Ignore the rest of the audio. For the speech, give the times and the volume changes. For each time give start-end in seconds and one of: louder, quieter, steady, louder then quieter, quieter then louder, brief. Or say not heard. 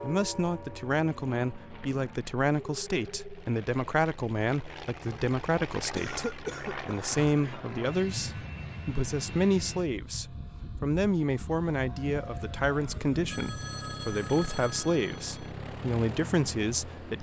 0.0-17.1 steady.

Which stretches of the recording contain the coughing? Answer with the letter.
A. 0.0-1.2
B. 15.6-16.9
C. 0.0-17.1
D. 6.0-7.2
D.